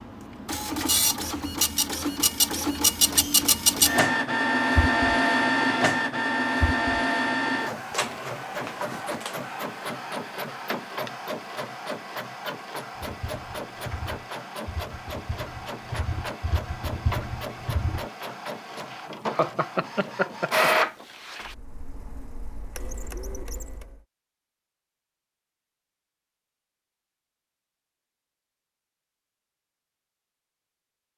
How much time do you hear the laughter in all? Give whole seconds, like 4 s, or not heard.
2 s.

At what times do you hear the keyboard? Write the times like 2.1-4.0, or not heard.
12.9-18.1.